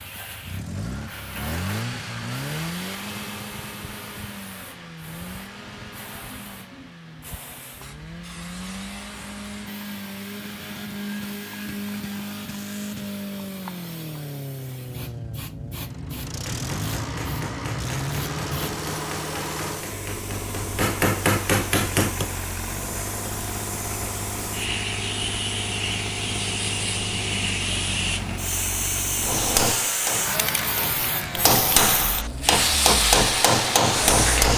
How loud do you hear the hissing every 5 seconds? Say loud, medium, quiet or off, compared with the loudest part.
quiet, quiet, quiet, medium, medium, loud, loud.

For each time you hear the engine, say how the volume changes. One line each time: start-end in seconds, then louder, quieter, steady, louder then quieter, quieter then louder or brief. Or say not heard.
0.0-34.2 steady.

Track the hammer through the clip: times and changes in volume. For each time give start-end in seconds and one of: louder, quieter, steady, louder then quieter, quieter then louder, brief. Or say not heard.
16.2-22.3 louder
29.2-34.5 quieter then louder.